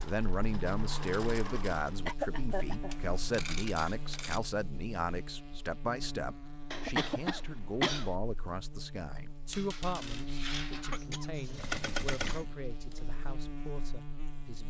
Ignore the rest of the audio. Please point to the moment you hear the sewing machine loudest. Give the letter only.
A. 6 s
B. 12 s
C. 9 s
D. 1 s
B.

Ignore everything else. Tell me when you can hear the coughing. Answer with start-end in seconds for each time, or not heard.
2.0-3.0, 6.7-8.2, 10.9-12.4.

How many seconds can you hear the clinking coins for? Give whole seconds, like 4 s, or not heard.
3 s.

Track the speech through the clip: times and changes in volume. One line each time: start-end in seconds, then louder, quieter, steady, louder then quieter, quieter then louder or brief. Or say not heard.
0.0-14.6 quieter.